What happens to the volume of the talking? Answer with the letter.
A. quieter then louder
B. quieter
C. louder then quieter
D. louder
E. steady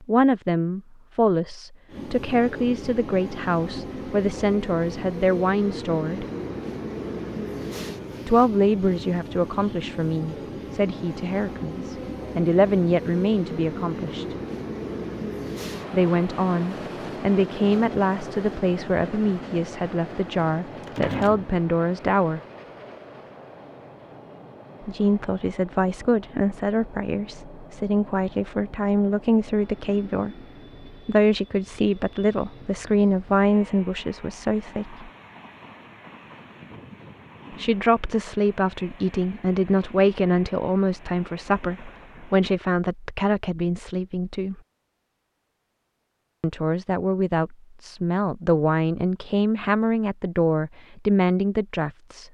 E.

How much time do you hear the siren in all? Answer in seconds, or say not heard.
not heard.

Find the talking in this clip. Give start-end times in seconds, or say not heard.
0.0-6.2, 8.2-14.3, 15.9-22.4, 24.9-35.0, 37.5-44.6, 46.4-52.3.